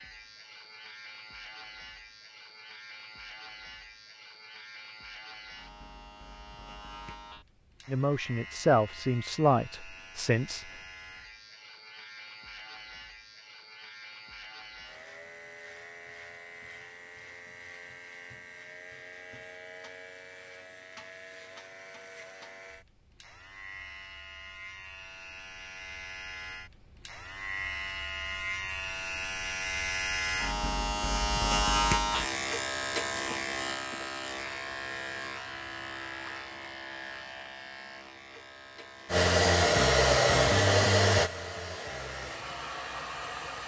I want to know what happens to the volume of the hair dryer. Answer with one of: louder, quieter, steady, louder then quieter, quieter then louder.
quieter.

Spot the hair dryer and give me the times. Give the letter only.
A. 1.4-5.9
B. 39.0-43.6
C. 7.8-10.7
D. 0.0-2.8
B.